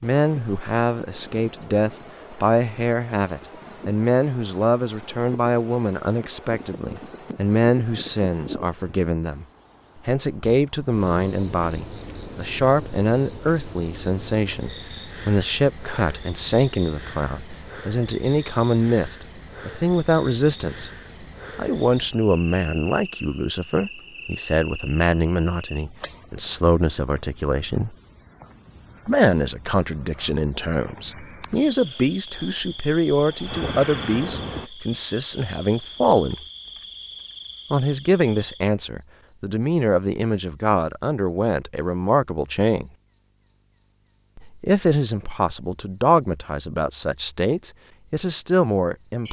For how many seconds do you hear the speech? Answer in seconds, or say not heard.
44 s.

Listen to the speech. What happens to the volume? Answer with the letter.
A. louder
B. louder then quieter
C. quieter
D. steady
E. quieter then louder
D.